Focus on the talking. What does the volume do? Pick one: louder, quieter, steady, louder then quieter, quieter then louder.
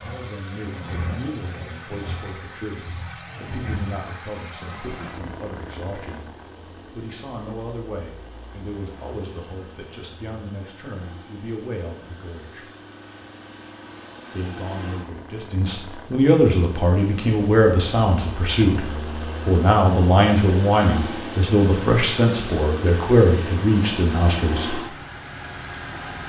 louder.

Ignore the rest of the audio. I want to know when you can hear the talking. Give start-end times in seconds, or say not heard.
0.0-6.3, 6.9-12.7, 14.3-24.8.